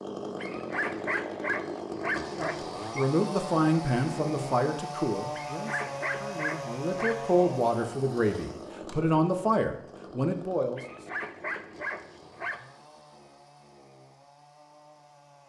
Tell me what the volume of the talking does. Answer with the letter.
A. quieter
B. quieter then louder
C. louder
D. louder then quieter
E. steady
B.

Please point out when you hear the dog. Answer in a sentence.
The dog can be heard from 0.4 to 3.1 s, from 5.3 to 7.3 s and from 10.8 to 12.7 s.